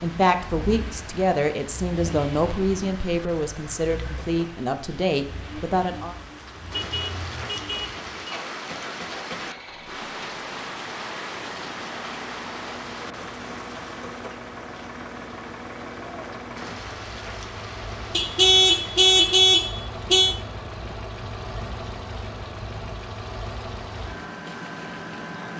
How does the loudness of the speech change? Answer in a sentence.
The volume of the speech stays about the same.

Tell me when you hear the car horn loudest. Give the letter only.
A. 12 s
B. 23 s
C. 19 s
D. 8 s
C.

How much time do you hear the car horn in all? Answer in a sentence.
You can hear the car horn for 4 seconds altogether.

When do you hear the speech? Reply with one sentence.
The speech can be heard from 0.0 to 6.2 s.